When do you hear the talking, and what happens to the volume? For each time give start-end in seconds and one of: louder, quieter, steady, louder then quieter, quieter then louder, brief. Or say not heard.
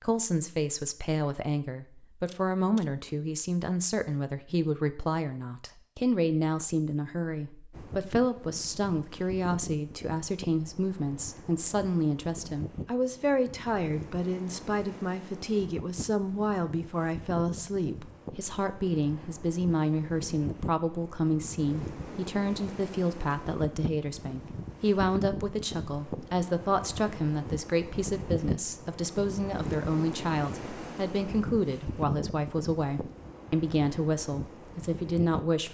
0.0-35.6 steady.